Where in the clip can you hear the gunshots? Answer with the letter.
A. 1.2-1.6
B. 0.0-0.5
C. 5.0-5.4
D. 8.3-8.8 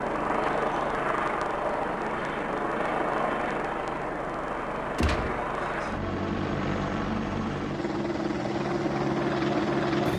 C.